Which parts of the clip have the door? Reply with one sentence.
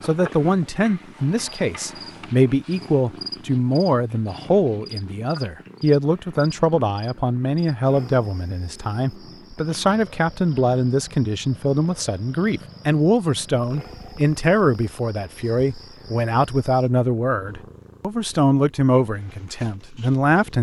The door can't be heard in this clip.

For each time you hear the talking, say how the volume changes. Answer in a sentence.
You can hear the talking from 0.0 to 20.5 s, at a steady volume.